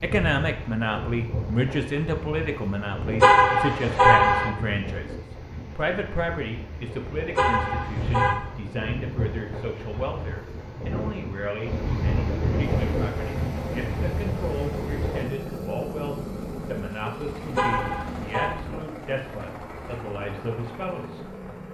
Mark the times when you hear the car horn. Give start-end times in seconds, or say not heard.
3.2-4.5, 7.3-8.3, 17.6-18.5.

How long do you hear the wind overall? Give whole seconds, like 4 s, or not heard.
15 s.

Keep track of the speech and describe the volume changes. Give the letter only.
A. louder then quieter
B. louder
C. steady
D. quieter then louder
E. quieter
E.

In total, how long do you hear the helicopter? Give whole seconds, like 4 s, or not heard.
9 s.